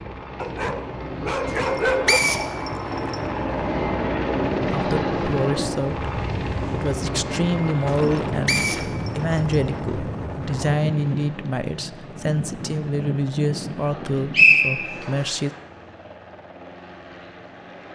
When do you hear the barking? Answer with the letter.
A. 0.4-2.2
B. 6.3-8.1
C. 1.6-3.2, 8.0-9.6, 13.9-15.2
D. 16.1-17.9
A.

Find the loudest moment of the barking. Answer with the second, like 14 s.
2 s.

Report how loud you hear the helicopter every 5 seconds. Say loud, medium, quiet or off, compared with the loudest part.
loud, loud, quiet, quiet.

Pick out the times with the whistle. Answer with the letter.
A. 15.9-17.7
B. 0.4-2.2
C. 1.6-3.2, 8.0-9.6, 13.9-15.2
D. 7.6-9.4
C.